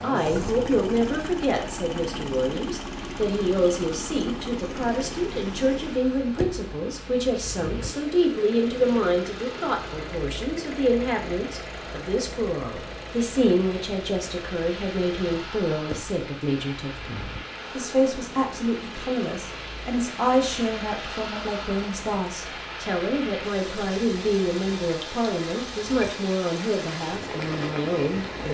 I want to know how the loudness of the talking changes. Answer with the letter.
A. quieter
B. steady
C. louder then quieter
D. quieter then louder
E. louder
B.